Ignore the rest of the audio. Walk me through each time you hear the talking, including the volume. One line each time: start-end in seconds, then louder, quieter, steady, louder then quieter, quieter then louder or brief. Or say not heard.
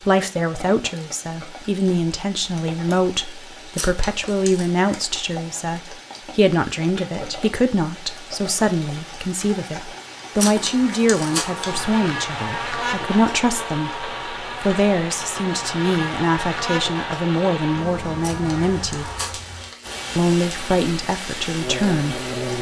0.1-19.1 steady
20.1-22.5 brief.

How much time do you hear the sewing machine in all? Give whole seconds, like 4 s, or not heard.
not heard.